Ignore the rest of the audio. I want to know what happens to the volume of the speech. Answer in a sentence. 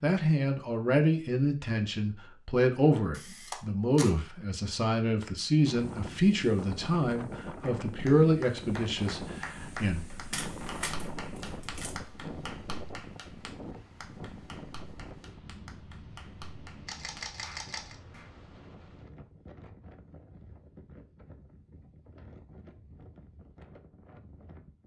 The volume of the speech stays about the same.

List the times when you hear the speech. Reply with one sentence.
The speech can be heard from 0.0 to 10.1 s.